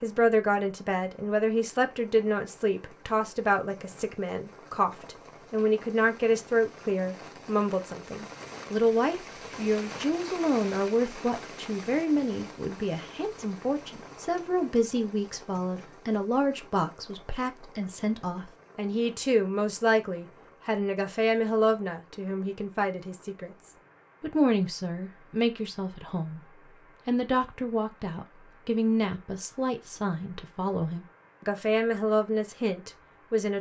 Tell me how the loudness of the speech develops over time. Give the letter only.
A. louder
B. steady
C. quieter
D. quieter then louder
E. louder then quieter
B.